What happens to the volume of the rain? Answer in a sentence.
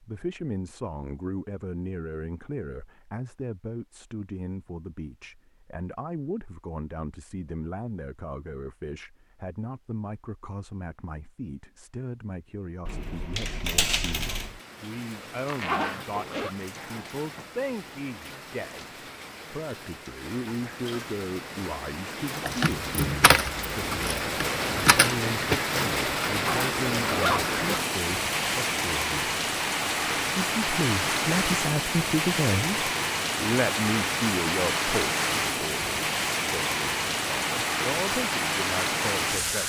The volume of the rain goes up.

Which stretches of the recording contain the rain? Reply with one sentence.
The rain can be heard from 14.3 to 39.6 s.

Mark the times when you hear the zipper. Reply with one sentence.
You can hear the zipper from 15.5 to 16.5 s and from 26.3 to 27.6 s.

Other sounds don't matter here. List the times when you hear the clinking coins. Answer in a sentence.
You can hear the clinking coins from 12.8 to 14.6 s and from 22.4 to 25.1 s.